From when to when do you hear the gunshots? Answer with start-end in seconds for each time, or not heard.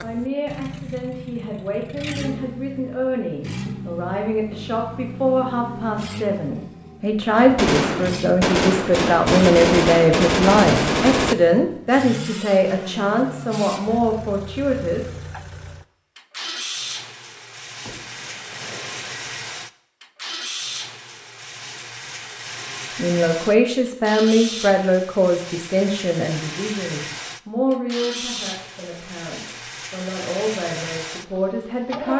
7.5-11.3, 17.4-19.3.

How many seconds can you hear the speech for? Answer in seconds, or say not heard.
24 s.